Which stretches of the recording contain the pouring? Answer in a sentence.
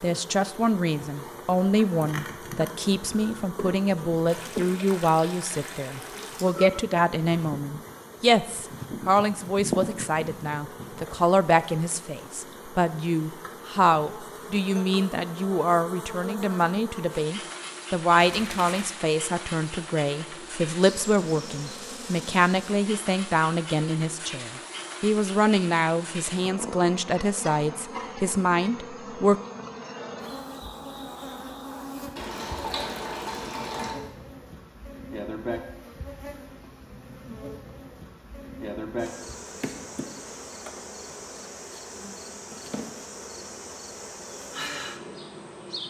The pouring can be heard from 4.2 to 6.5 s, from 18.1 to 18.9 s and from 32.1 to 34.0 s.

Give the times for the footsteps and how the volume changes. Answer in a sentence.
The footsteps can't be heard in this clip.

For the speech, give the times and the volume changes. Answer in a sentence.
You can hear the speech from 0.0 to 29.4 s, at a steady volume.